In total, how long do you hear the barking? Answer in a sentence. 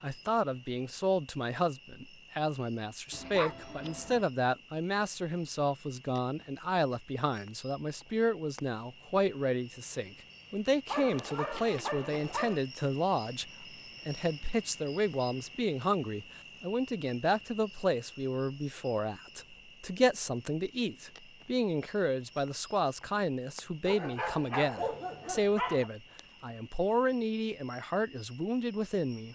You can hear the barking for 5 seconds altogether.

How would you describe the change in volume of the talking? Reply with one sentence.
The loudness of the talking stays about the same.